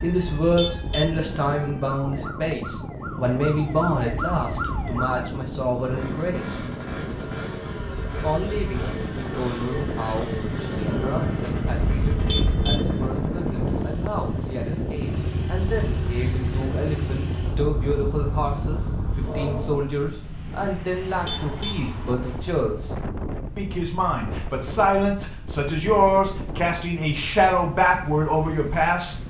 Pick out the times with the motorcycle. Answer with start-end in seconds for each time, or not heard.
3.0-19.9.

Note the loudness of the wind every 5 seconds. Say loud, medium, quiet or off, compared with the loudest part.
medium, medium, loud, medium, medium, medium.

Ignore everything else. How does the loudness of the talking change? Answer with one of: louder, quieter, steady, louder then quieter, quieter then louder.
quieter then louder.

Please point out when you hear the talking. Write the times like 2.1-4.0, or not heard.
0.0-6.7, 8.2-22.9, 23.6-29.1.